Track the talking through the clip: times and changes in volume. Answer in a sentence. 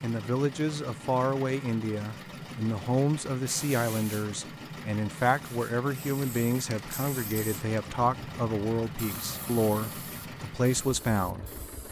The talking can be heard from 0.0 to 11.6 s, at a steady volume.